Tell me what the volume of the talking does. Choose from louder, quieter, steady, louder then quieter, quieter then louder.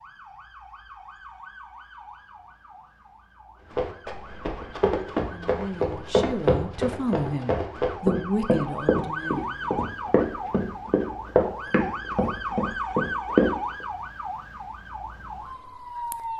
louder then quieter.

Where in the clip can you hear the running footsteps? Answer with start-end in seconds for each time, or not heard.
3.7-13.6.